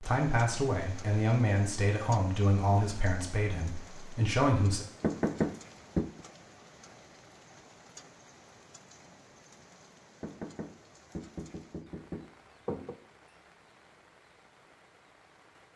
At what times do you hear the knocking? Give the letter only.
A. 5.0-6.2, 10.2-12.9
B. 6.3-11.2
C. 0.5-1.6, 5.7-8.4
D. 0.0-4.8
A.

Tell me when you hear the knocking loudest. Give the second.
5 s.